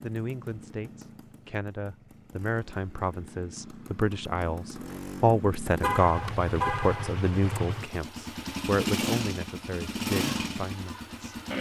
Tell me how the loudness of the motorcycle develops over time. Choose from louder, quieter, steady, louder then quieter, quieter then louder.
louder.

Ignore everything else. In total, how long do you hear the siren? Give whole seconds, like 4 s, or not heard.
not heard.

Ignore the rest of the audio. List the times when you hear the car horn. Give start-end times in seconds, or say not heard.
5.8-7.1.